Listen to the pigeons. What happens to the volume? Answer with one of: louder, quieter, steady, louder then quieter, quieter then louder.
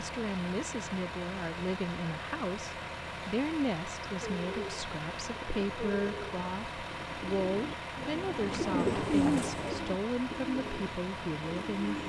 louder then quieter.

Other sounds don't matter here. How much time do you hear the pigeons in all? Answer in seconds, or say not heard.
8 s.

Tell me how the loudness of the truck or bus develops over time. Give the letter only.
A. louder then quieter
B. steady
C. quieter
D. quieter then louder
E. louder
B.